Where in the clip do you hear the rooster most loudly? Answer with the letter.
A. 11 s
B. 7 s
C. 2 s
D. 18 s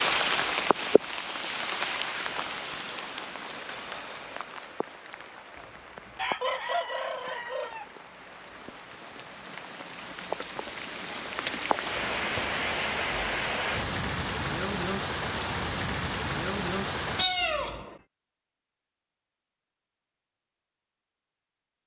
B.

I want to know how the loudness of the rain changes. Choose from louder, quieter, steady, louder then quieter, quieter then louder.
quieter then louder.